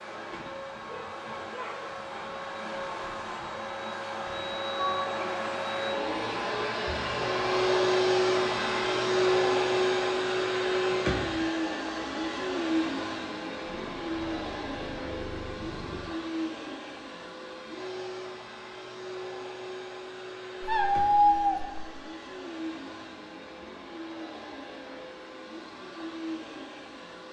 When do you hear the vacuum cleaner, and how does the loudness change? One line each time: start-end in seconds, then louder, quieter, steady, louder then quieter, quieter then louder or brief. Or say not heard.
0.0-27.2 louder then quieter.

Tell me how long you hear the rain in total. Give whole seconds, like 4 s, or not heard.
not heard.